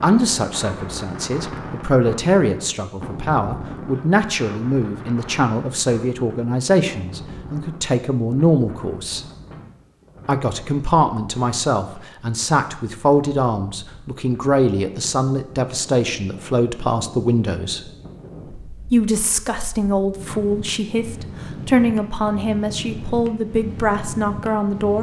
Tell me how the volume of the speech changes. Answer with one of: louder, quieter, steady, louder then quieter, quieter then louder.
steady.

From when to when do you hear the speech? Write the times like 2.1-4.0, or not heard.
0.0-9.2, 10.2-17.8, 18.9-24.9.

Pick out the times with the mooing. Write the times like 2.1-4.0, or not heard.
not heard.